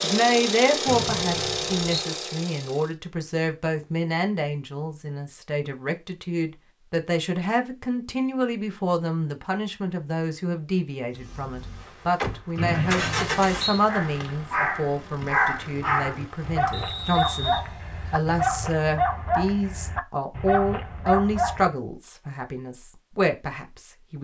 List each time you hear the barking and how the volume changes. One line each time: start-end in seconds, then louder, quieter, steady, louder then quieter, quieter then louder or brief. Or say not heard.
13.8-21.8 steady.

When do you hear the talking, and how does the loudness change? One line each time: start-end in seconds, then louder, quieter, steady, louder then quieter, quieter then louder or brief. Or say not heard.
0.0-24.1 steady.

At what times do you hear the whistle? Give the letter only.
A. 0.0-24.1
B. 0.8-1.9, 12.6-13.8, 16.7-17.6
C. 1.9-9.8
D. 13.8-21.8
B.